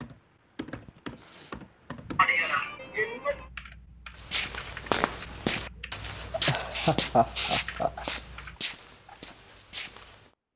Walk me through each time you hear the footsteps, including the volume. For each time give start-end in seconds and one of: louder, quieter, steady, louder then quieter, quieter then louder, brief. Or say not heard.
4.2-10.3 quieter.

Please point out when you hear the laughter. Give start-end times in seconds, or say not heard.
2.1-3.5, 6.5-7.9.